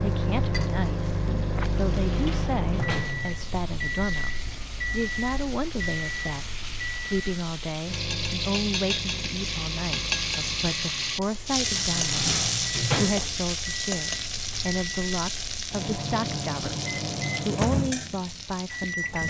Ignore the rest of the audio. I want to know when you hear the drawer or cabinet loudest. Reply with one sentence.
The loudest moment of the drawer or cabinet is at 13 seconds.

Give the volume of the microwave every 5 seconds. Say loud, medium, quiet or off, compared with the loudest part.
loud, medium, medium, loud.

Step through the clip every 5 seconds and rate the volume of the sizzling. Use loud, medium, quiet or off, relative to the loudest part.
quiet, medium, loud, medium.